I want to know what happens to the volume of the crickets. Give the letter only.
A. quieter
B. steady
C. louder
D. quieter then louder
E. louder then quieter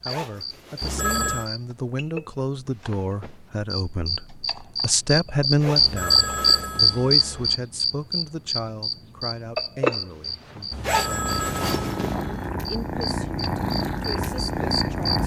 E.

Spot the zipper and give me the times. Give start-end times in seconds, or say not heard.
0.1-1.2, 5.6-6.8, 10.8-12.2.